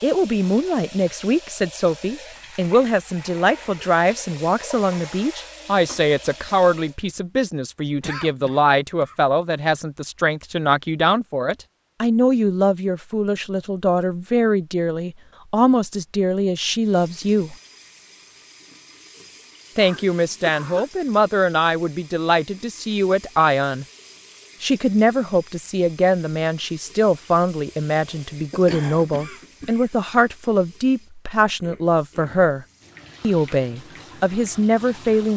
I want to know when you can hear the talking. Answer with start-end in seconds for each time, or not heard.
0.0-17.6, 19.8-23.9, 24.6-35.3.